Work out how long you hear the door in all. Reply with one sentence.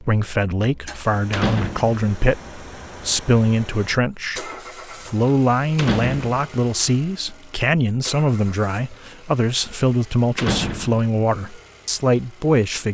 You can hear the door for 2 seconds altogether.